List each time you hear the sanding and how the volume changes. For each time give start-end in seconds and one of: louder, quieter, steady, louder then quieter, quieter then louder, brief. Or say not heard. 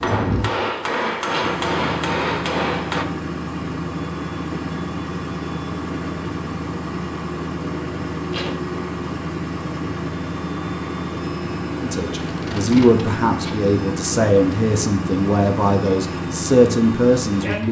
not heard.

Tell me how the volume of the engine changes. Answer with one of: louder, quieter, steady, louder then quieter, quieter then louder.
steady.